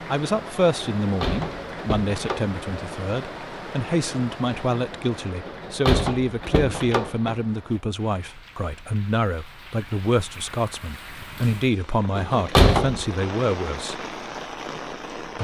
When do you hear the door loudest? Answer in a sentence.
The loudest moment of the door is at 13 seconds.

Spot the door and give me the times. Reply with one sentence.
You can hear the door from 1.0 to 2.5 s, from 5.5 to 7.4 s and from 12.2 to 13.1 s.